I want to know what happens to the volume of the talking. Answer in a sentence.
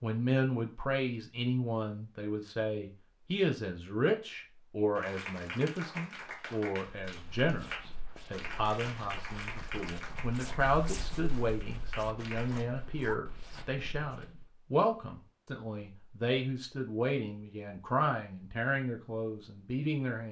The volume of the talking stays about the same.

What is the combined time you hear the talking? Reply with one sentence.
The talking can be heard for 20 seconds in total.